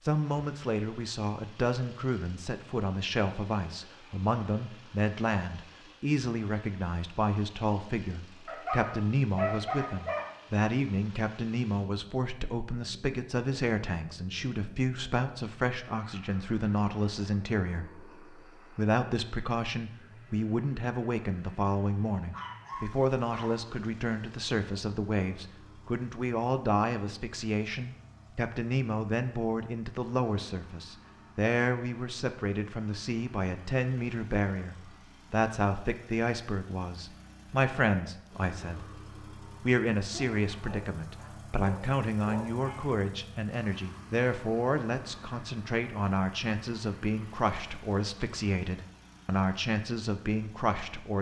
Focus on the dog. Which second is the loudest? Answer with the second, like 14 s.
10 s.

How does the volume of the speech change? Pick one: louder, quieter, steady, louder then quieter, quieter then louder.
steady.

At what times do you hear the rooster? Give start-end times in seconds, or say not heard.
not heard.